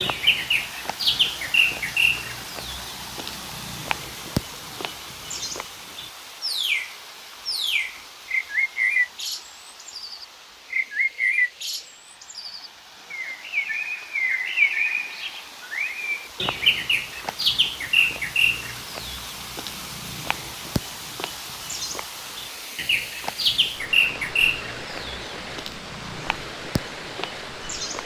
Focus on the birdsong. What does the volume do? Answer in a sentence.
The loudness of the birdsong stays about the same.